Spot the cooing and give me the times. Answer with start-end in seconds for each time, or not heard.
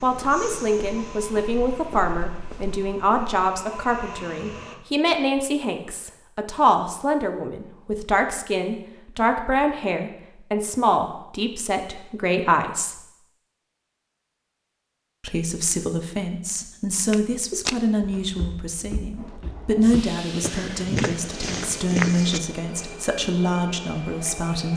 not heard.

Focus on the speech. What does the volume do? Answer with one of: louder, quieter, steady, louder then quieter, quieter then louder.
steady.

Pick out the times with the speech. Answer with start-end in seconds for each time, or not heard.
0.0-13.1, 15.2-24.7.